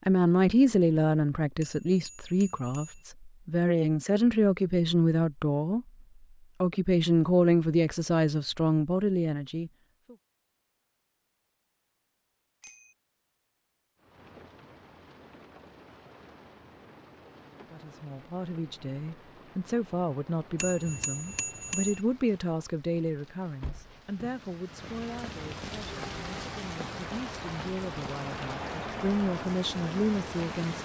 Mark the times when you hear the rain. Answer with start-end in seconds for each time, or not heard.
13.9-30.7.